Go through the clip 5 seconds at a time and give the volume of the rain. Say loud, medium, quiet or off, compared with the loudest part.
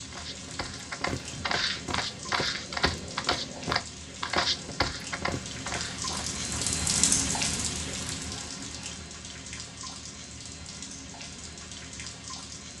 medium, loud, medium.